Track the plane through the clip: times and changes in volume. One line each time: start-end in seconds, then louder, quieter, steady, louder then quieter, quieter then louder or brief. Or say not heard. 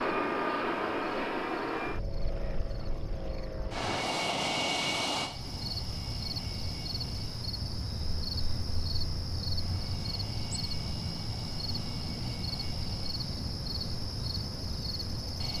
0.0-15.5 quieter.